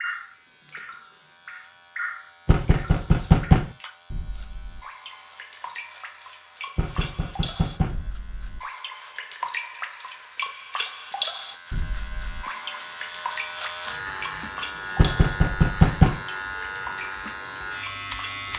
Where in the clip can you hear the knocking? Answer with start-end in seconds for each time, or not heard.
2.5-3.7, 6.8-8.0, 14.9-16.2.